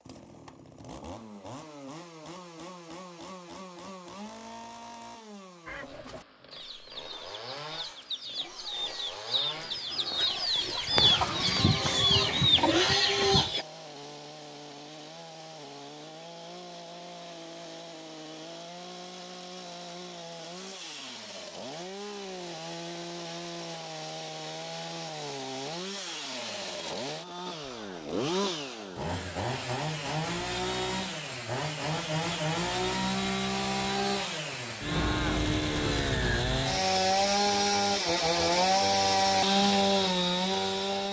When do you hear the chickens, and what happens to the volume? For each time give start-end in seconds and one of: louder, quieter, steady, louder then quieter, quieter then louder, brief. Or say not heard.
5.7-13.7 louder.